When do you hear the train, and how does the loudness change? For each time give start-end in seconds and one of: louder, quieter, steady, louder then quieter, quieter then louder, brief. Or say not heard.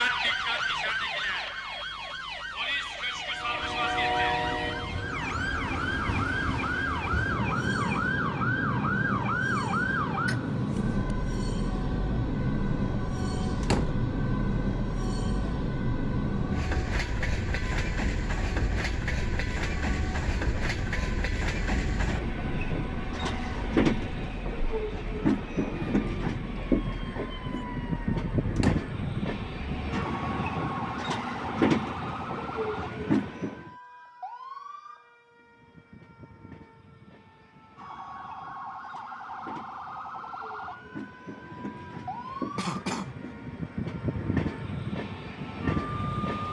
3.3-33.7 steady
35.3-46.4 louder.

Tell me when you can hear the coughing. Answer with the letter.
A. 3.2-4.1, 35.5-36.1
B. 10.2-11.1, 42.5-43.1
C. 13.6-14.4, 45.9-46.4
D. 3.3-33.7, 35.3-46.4
B.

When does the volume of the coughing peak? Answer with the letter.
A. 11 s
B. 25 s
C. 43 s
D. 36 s
C.